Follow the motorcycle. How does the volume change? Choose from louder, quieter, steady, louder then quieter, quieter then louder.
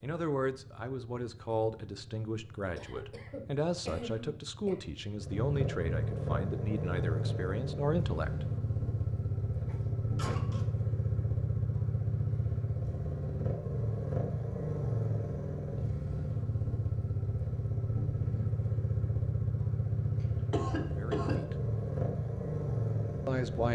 louder.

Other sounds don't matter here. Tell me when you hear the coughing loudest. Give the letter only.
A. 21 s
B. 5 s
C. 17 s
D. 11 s
A.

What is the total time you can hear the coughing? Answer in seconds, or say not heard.
4 s.